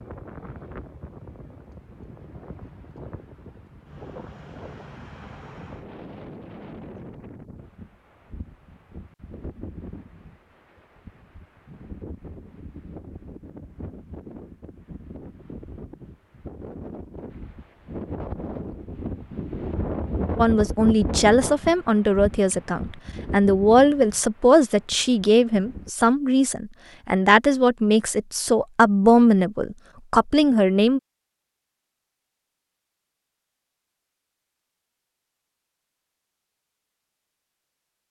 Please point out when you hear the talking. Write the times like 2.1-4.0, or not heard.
20.4-31.0.